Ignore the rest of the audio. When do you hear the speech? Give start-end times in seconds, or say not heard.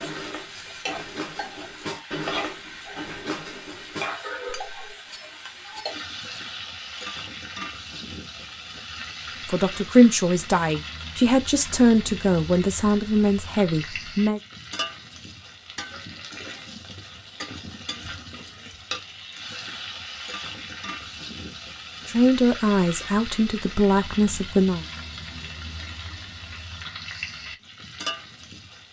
9.4-14.4, 22.1-24.9.